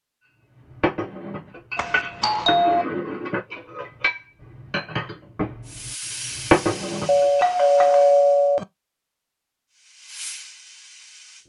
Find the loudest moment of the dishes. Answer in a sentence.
The loudest moment of the dishes is at 7 seconds.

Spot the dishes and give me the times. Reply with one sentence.
You can hear the dishes from 0.7 to 7.5 s.